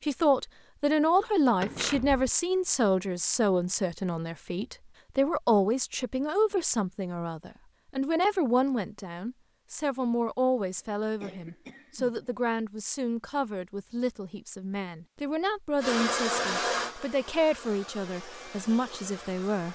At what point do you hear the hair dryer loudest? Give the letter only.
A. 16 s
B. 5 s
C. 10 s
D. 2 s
A.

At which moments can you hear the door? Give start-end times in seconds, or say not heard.
1.6-2.3.